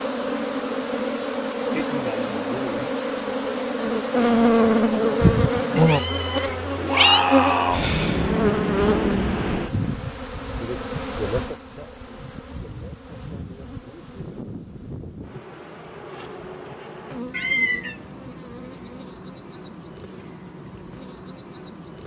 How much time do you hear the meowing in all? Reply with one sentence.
The meowing can be heard for 2 seconds in total.